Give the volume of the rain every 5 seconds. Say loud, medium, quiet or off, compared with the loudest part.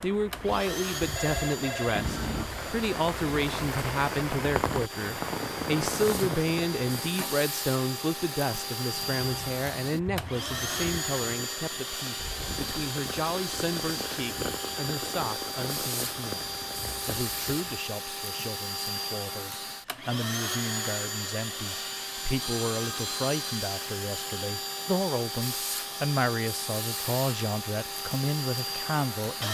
loud, loud, medium, medium, off, off.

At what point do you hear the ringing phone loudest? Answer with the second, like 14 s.
2 s.